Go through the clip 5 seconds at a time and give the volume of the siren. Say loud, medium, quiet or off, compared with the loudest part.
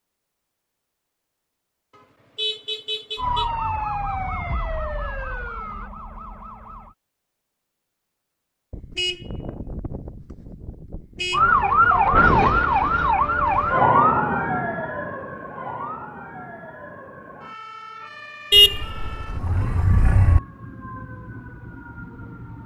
medium, quiet, loud, quiet, quiet.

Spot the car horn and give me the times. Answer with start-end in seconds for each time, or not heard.
1.9-3.5, 8.7-11.4, 18.5-20.4.